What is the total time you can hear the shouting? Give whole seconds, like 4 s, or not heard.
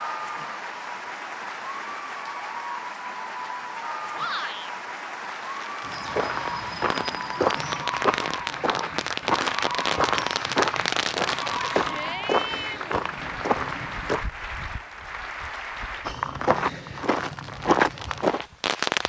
2 s.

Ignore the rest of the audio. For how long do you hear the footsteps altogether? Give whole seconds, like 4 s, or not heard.
11 s.